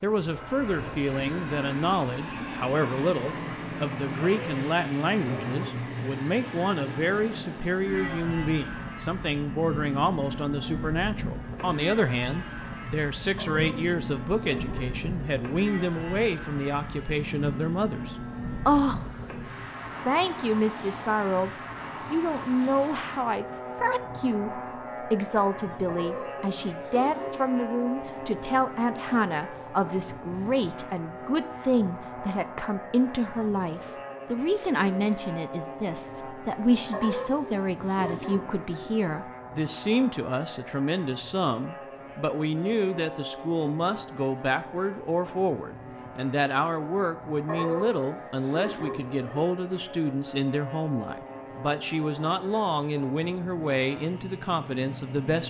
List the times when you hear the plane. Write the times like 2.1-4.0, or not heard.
0.0-55.4.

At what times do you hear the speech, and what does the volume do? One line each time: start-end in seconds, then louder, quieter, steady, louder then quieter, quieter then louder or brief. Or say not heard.
0.0-21.5 steady
22.1-55.4 steady.